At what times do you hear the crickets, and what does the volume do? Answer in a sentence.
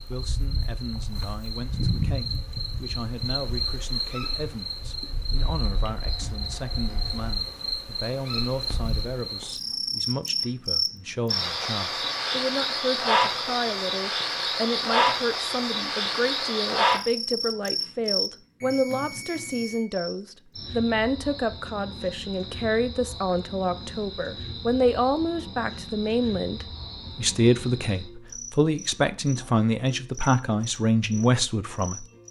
The crickets can be heard from 0.0 to 32.2 s, getting louder then quieter.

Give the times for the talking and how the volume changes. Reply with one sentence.
The talking can be heard from 0.0 to 32.0 s, getting louder.